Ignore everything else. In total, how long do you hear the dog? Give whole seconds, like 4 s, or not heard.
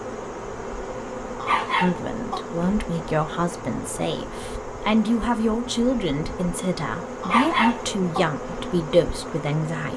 2 s.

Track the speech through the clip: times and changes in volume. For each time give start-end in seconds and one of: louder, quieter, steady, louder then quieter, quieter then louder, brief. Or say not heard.
1.8-9.9 steady.